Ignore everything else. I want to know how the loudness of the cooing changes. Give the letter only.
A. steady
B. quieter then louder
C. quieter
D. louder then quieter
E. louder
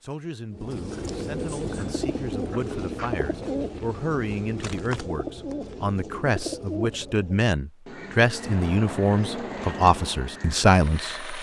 C.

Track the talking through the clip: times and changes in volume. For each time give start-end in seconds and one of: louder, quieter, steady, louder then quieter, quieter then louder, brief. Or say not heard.
0.0-11.3 louder.